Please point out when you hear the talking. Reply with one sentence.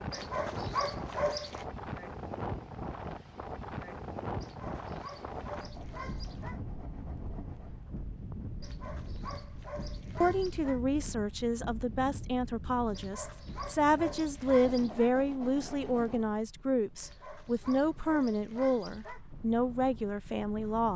You can hear the talking from 10.2 to 20.9 s.